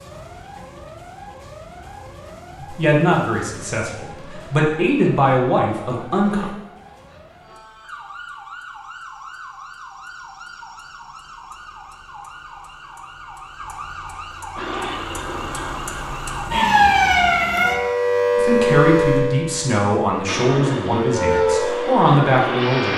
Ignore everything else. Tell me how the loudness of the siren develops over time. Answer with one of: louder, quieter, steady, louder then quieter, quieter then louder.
louder.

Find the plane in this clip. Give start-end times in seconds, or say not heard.
14.6-16.2, 20.2-22.9.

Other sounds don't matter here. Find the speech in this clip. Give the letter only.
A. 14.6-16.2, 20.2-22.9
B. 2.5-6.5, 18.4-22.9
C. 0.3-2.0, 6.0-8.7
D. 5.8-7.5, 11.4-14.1
B.